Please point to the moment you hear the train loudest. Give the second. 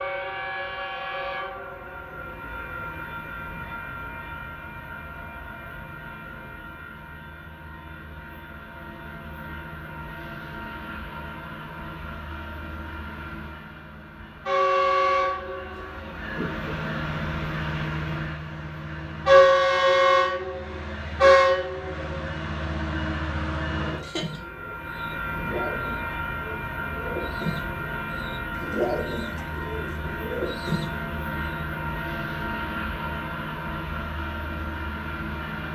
20 s.